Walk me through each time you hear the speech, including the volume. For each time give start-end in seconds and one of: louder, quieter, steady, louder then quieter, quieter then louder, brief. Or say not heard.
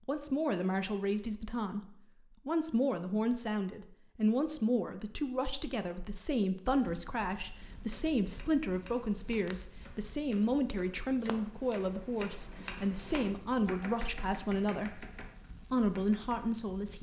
0.1-15.1 steady
15.7-16.9 brief.